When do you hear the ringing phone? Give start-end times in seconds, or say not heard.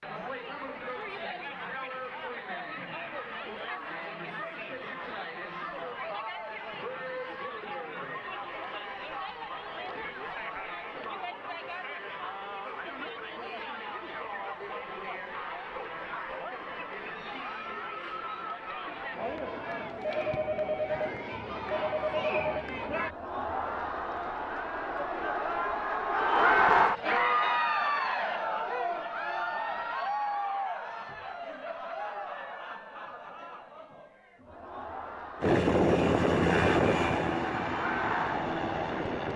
19.9-22.6.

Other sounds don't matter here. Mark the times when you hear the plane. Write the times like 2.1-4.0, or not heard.
35.4-39.3.